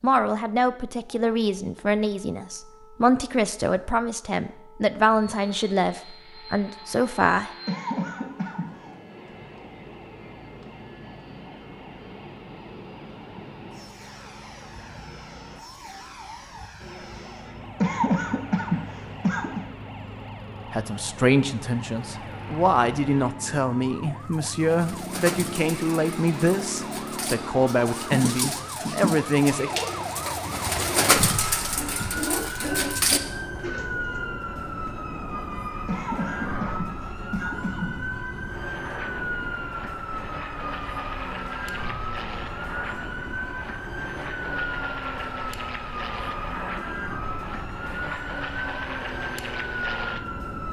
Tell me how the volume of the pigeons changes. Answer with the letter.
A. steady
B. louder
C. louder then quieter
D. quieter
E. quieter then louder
B.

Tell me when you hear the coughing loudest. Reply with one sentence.
The volume of the coughing peaks at 18 seconds.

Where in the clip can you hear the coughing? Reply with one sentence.
You can hear the coughing from 7.7 to 8.8 s, from 17.8 to 19.6 s and from 35.9 to 38.0 s.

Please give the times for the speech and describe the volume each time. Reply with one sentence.
The speech can be heard from 0.0 to 7.5 s, at a steady volume; and from 20.7 to 29.8 s, at a steady volume.